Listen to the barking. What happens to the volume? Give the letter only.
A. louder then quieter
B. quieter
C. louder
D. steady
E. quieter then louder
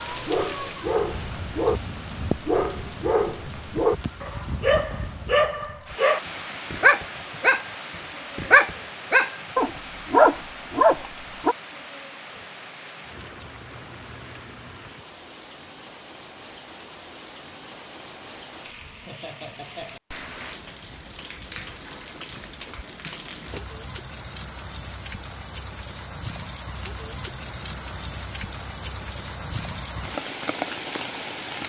C.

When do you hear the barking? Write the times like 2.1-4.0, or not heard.
0.1-11.6.